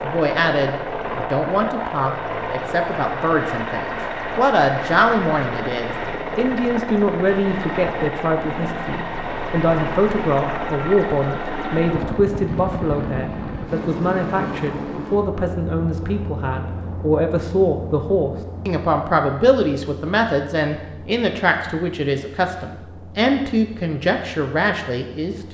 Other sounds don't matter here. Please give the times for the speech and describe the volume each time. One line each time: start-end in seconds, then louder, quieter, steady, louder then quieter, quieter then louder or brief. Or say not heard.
0.0-25.4 steady.